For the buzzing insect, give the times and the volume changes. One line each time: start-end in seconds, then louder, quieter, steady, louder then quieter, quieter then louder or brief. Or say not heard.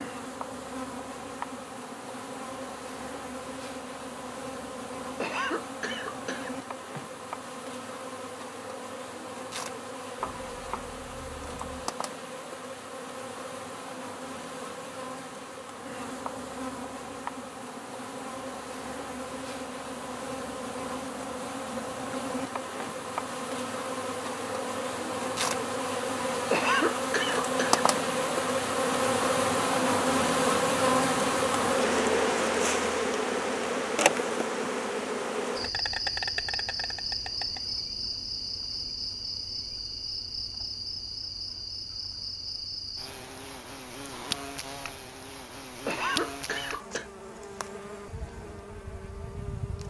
0.0-49.8 louder then quieter.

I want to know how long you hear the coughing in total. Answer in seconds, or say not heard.
4 s.